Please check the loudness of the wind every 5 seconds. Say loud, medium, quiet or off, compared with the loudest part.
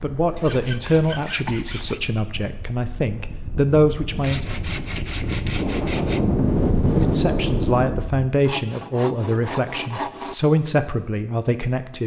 quiet, loud, off.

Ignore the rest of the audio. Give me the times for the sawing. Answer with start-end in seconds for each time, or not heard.
0.3-2.0, 4.2-6.2, 8.4-10.3.